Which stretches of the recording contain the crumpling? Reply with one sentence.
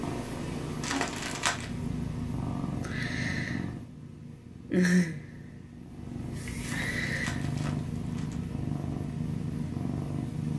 You can hear the crumpling from 0.8 to 1.7 s and from 6.6 to 8.3 s.